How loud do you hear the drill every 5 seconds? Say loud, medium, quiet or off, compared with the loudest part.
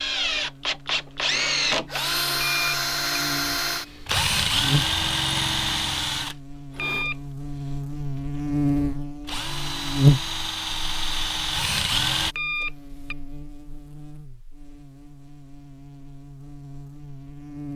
loud, loud, loud, off.